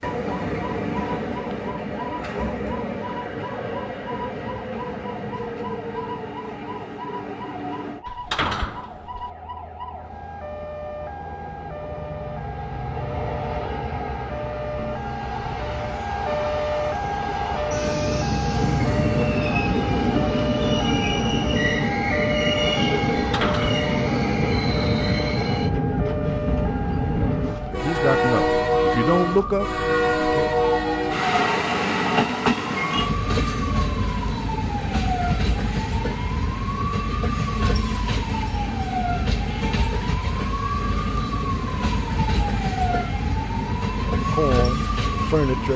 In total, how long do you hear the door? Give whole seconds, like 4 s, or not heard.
2 s.